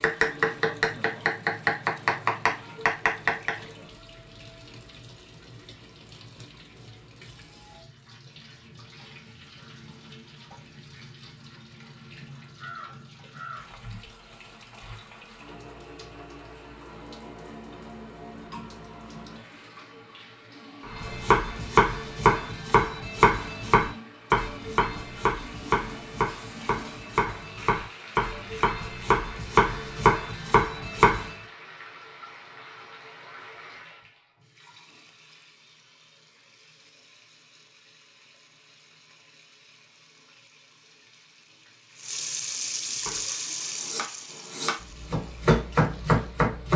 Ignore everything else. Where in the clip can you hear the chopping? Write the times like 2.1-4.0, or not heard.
0.0-3.5, 20.9-31.3, 43.0-46.7.